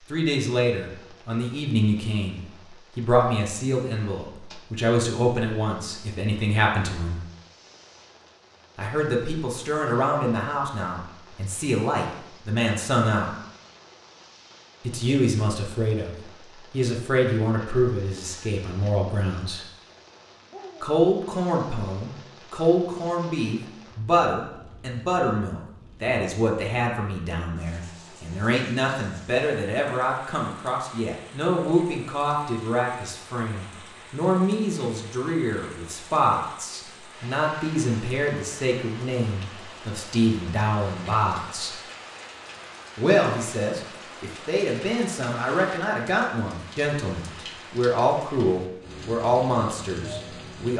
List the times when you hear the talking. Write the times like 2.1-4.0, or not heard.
0.1-7.2, 8.8-13.3, 14.8-19.6, 20.8-41.8, 43.0-50.7.